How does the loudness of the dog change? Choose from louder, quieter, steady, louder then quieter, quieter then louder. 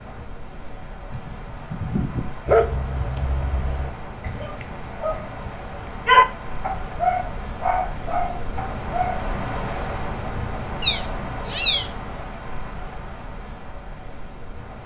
louder then quieter.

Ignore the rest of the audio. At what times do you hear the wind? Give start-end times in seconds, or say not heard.
0.0-14.8.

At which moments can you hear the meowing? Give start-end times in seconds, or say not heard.
1.1-2.4, 10.8-11.8.